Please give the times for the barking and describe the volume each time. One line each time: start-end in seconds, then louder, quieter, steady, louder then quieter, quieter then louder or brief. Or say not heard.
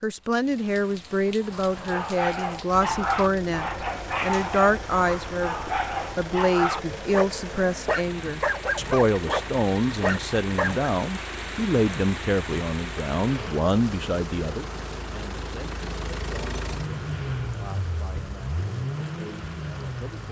1.4-10.9 steady.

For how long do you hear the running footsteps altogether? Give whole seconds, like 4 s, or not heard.
not heard.